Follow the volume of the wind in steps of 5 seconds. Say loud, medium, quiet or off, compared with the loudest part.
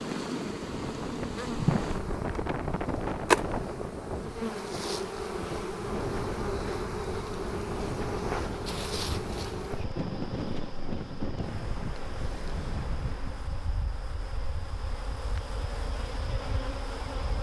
loud, loud, loud, medium.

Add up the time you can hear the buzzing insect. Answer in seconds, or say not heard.
17 s.